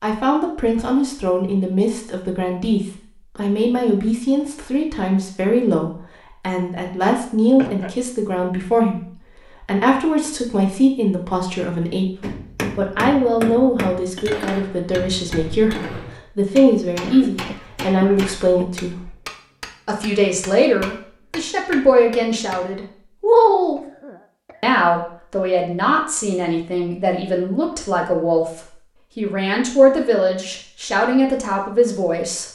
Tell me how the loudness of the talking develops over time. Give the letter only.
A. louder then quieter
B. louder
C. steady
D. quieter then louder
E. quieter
C.